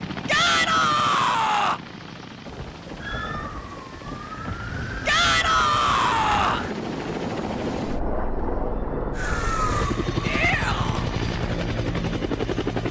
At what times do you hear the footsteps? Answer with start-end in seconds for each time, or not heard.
not heard.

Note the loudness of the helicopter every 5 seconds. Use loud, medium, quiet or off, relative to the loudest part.
medium, loud, loud.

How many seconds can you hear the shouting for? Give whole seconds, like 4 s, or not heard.
4 s.